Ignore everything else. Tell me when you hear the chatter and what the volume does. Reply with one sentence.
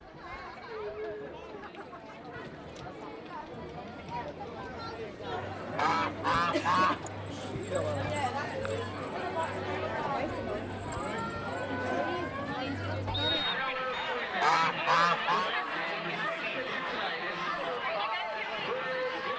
You can hear the chatter from 0.0 to 19.3 s, getting louder.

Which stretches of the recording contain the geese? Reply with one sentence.
The geese can be heard from 5.3 to 7.1 s and from 13.9 to 15.5 s.